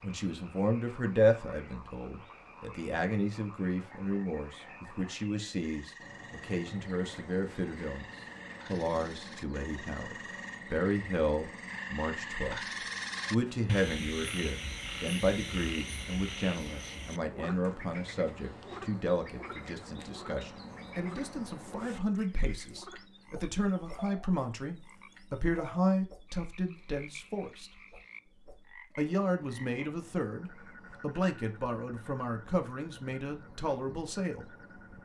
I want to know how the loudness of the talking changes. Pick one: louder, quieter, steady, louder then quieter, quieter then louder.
steady.